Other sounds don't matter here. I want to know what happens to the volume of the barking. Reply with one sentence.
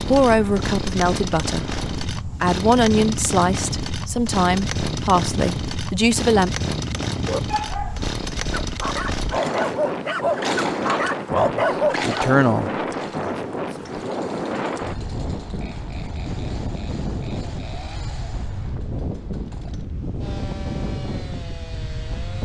The volume of the barking goes up.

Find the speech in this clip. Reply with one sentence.
You can hear the speech from 0.0 to 6.5 s and from 11.3 to 14.1 s.